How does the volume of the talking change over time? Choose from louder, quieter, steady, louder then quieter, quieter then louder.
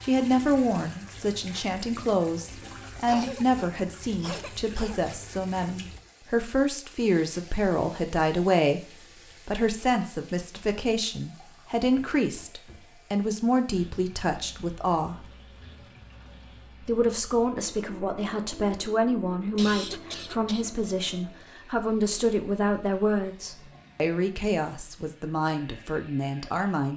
steady.